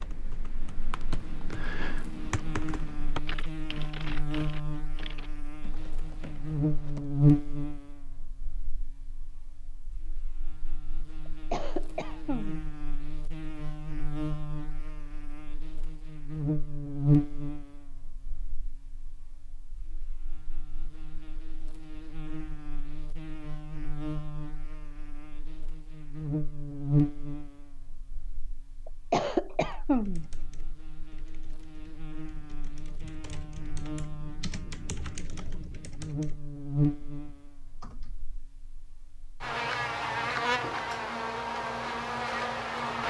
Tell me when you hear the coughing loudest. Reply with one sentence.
The loudest moment of the coughing is at 29 seconds.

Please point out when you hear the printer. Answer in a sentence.
The printer can't be heard in this clip.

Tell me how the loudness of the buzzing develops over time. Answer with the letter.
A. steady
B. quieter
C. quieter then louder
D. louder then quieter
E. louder
C.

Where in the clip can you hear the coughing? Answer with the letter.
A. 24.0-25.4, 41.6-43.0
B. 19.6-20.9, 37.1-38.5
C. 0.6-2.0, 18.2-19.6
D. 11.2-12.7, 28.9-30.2
D.